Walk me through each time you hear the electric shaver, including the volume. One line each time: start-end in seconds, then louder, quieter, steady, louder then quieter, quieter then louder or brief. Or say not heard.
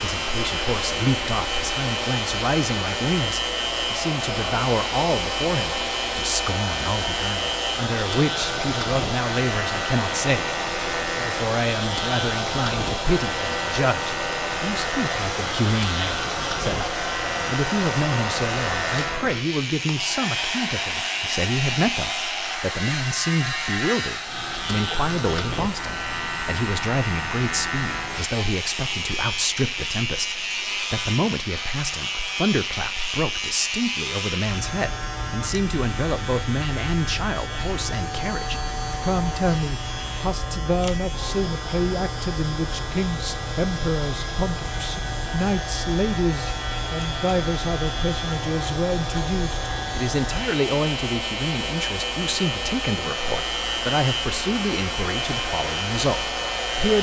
0.0-56.9 steady.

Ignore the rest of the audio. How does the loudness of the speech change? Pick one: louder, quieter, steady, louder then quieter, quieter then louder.
steady.